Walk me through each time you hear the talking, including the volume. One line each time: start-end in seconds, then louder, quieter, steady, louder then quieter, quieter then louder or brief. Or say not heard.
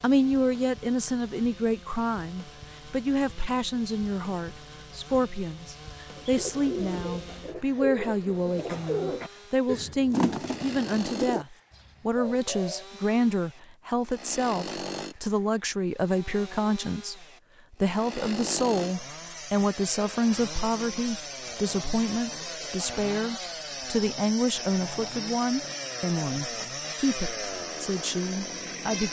0.0-29.0 steady.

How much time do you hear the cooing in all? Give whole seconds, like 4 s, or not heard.
7 s.